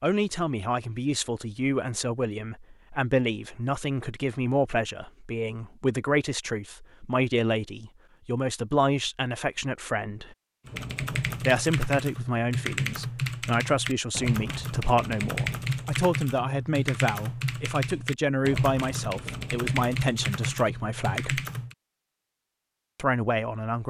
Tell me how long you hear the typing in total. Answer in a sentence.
You can hear the typing for 11 seconds altogether.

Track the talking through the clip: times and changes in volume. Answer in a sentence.
You can hear the talking from 0.0 to 10.3 s, at a steady volume; from 11.4 to 21.4 s, at a steady volume; and briefly from 22.9 to 23.8 s.